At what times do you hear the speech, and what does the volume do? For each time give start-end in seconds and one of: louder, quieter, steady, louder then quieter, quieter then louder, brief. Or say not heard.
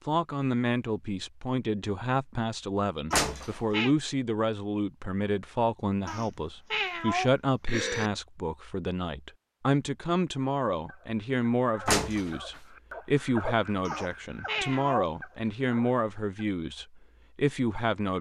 0.1-18.1 steady.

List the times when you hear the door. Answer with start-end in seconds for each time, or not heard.
3.1-3.5, 11.8-12.6.